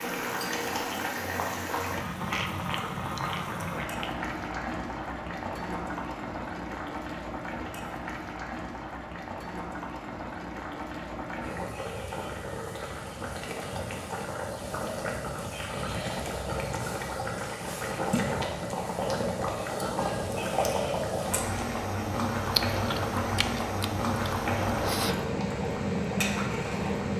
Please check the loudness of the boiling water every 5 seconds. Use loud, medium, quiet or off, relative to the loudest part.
loud, medium, medium, loud, loud, loud.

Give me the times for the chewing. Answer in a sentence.
The chewing can be heard from 2.3 to 4.1 s and from 22.5 to 25.2 s.